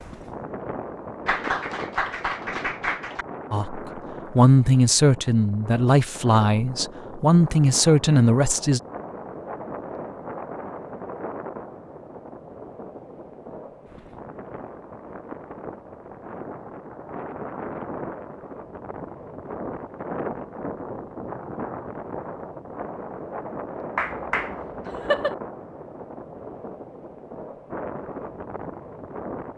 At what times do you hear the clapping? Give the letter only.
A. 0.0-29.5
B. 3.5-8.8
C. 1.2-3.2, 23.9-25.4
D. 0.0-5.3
C.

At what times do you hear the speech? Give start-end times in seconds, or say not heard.
3.5-8.8.